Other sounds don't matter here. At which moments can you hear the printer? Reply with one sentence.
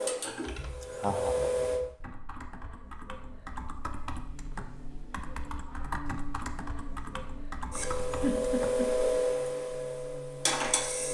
You can hear the printer from 0.0 to 1.9 s and from 7.7 to 11.0 s.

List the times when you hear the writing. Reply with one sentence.
The writing can't be heard in this clip.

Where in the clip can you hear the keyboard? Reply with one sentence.
You can hear the keyboard from 0.2 to 8.9 s.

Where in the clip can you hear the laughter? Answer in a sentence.
The laughter can be heard from 0.8 to 1.4 s and from 8.2 to 8.9 s.